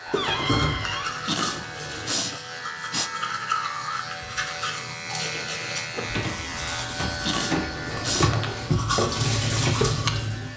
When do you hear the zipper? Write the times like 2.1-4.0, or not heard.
not heard.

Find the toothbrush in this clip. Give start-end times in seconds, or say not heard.
0.1-10.4.